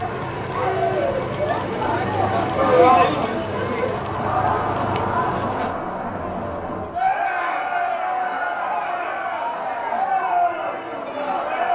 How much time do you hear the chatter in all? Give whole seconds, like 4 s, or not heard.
12 s.